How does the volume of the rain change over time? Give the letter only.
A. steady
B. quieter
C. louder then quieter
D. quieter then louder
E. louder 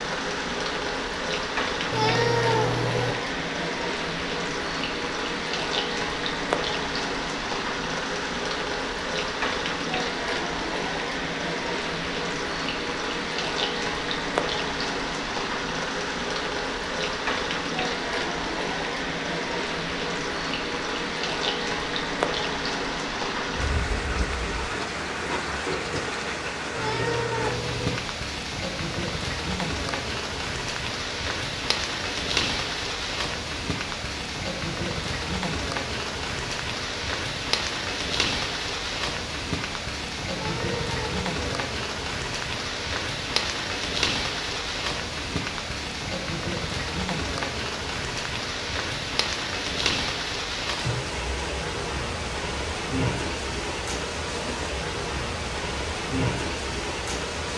A.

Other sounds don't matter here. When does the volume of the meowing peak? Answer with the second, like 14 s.
2 s.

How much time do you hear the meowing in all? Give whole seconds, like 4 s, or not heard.
4 s.